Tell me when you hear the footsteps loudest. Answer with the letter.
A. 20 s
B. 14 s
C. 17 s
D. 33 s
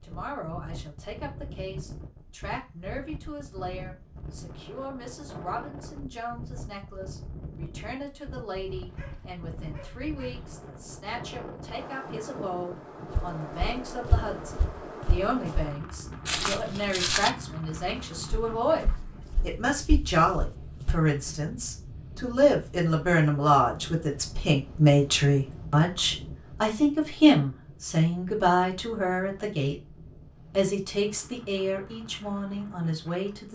C.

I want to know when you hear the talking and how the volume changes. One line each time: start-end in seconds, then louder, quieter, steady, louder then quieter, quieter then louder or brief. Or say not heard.
0.0-33.5 louder.